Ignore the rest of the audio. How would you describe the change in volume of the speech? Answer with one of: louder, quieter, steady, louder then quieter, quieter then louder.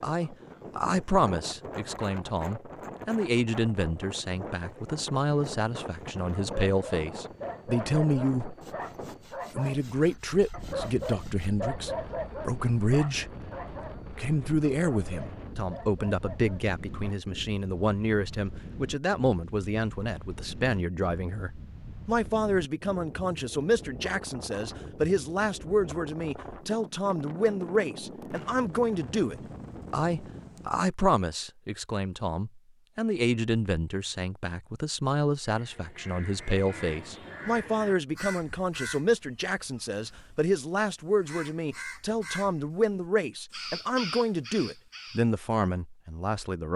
steady.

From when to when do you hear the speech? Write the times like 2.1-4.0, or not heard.
0.0-8.6, 9.5-13.3, 14.1-46.7.